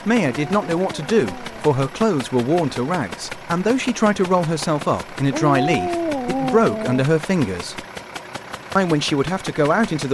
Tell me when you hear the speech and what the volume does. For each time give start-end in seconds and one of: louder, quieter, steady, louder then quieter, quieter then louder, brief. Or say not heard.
0.1-7.8 steady
8.8-10.0 brief.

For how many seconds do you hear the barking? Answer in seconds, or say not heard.
3 s.